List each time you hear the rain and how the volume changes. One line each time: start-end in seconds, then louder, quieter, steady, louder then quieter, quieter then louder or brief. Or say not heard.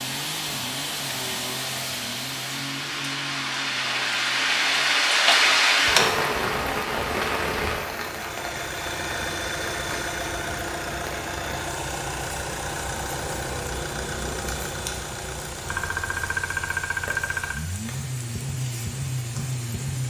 0.1-20.0 louder then quieter.